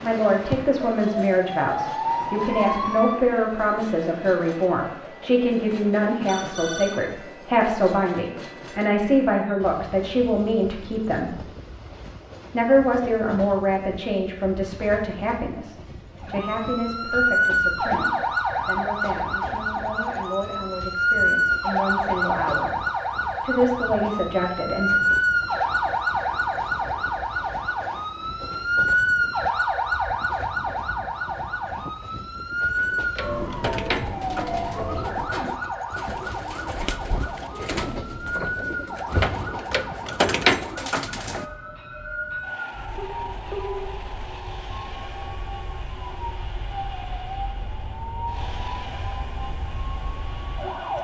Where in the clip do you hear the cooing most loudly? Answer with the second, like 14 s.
40 s.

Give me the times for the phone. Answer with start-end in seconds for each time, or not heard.
6.2-7.0, 43.0-44.0.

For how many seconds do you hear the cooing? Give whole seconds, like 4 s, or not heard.
9 s.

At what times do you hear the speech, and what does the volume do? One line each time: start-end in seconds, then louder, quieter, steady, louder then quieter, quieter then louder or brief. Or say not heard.
0.0-11.4 steady
12.5-22.7 quieter
23.4-25.0 brief.